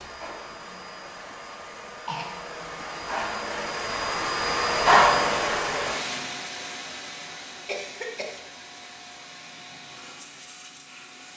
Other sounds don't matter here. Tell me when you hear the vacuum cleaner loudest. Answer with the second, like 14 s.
5 s.